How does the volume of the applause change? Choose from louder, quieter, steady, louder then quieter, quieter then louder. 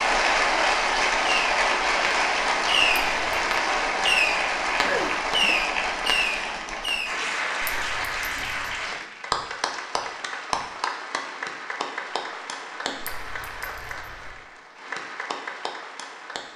quieter.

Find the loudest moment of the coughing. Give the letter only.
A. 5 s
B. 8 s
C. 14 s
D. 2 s
A.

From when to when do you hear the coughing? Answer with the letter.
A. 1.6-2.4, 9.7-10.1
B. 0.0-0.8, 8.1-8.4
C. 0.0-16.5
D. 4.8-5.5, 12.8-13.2
D.